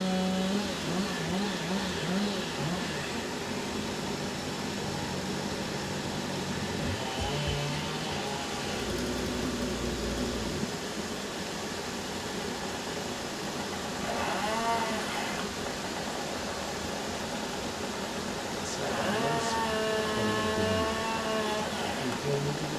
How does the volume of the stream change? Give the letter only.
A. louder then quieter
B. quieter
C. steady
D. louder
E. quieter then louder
C.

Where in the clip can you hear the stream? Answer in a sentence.
You can hear the stream from 0.0 to 22.7 s.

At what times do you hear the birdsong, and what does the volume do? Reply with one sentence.
The birdsong can't be heard in this clip.